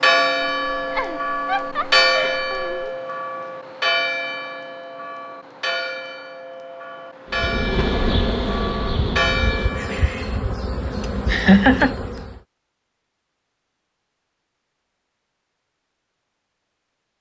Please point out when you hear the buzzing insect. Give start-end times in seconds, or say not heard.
7.3-12.4.